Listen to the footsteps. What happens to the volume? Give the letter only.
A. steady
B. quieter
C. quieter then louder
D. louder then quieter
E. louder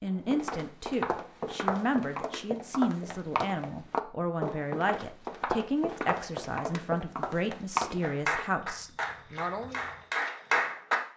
B.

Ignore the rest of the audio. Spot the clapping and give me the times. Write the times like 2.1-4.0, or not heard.
8.0-10.9.